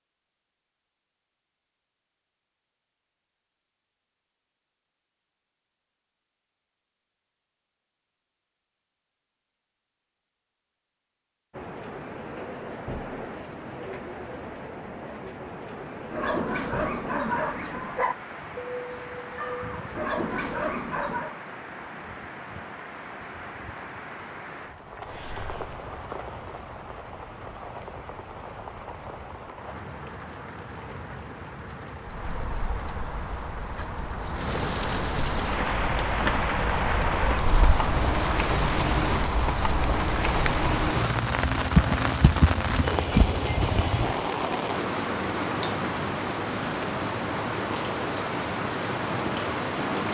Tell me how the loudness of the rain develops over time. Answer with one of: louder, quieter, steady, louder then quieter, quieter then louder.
louder.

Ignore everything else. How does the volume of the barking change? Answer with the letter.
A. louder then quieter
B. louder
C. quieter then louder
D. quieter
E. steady
C.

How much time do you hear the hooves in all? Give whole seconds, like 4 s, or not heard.
12 s.